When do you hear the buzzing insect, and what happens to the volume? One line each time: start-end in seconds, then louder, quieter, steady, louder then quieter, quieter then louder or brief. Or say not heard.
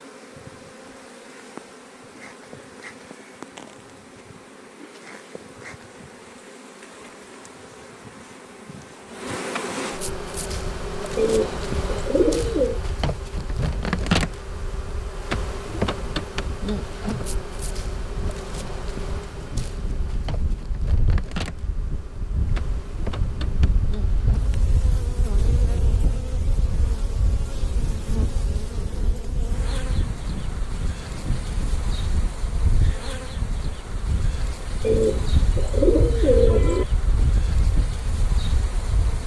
0.0-39.2 louder then quieter.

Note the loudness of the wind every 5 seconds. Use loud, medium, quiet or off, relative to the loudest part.
off, off, medium, medium, loud, loud, loud, loud.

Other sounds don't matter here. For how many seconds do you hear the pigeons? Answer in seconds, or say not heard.
4 s.